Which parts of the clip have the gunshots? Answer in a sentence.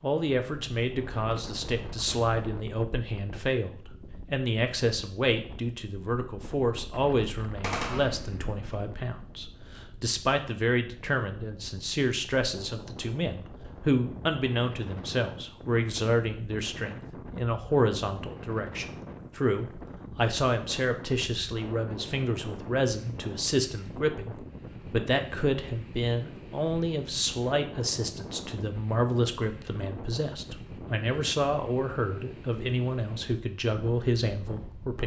You can hear the gunshots from 7.6 to 8.6 s.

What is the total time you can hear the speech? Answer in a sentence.
You can hear the speech for 35 seconds altogether.